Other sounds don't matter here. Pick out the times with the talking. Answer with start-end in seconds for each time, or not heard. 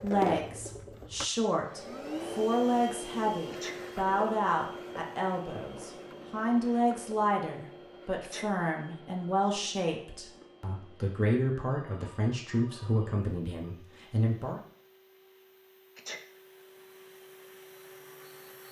0.0-14.6.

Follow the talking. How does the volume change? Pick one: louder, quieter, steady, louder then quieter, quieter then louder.
steady.